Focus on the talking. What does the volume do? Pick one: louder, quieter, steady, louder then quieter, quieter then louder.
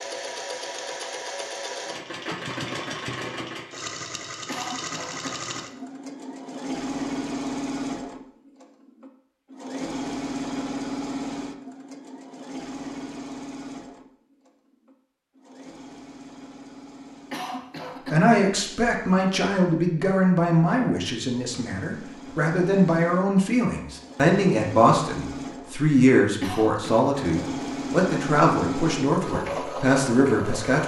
steady.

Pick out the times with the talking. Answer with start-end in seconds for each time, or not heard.
18.1-30.8.